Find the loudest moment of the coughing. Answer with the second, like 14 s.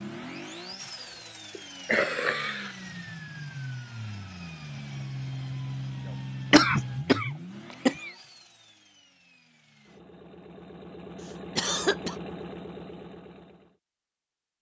7 s.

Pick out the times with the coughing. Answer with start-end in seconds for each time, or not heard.
1.0-2.8, 6.5-8.1, 11.6-12.2.